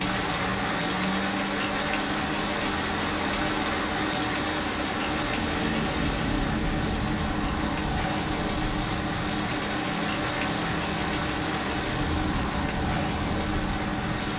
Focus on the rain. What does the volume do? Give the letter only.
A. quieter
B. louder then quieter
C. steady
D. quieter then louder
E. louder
C.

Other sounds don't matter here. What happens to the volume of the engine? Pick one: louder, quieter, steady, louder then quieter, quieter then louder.
steady.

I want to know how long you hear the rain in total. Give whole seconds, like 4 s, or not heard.
14 s.